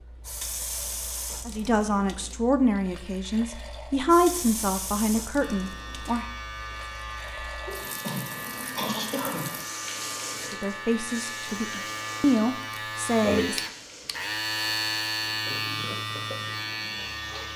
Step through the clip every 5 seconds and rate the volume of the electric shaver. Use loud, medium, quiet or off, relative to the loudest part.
off, medium, loud, loud.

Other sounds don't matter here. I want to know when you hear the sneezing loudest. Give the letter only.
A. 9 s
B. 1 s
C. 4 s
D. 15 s
A.